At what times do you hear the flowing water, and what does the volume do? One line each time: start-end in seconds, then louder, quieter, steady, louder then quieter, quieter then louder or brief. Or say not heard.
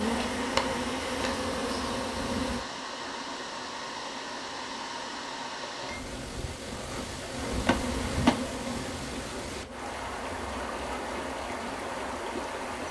0.0-12.8 steady.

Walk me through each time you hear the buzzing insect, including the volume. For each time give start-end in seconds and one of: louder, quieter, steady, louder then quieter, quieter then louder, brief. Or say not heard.
0.0-2.6 brief
7.3-12.8 quieter.